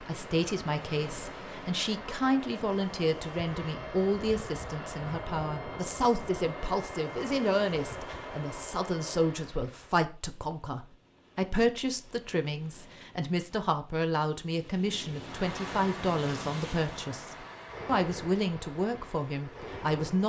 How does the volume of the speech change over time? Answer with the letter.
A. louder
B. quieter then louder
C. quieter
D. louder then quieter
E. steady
E.